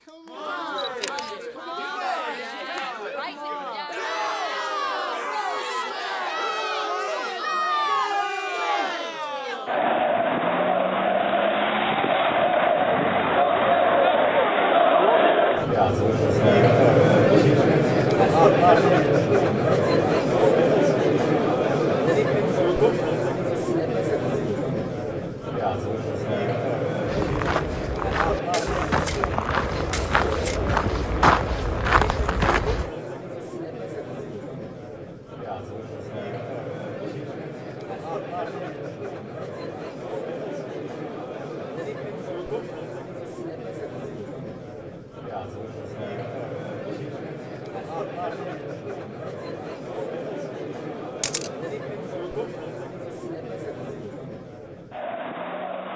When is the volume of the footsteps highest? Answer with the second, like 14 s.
31 s.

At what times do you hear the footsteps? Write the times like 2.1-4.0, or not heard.
27.1-32.9.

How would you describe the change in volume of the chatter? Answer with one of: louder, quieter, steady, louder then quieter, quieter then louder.
louder then quieter.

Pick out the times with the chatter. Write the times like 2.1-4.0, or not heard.
0.1-55.9.